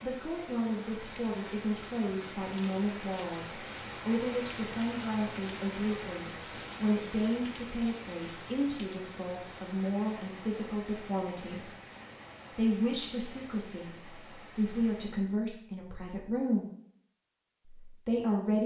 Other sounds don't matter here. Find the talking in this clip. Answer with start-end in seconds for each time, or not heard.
0.0-11.7, 12.6-16.6, 17.6-18.6.